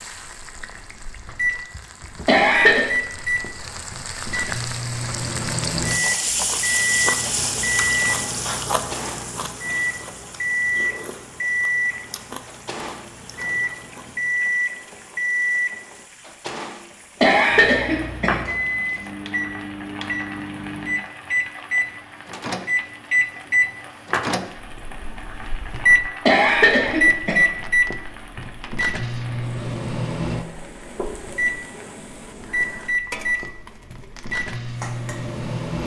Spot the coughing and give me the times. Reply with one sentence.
You can hear the coughing from 2.2 to 2.9 s, from 17.2 to 18.4 s and from 26.2 to 27.4 s.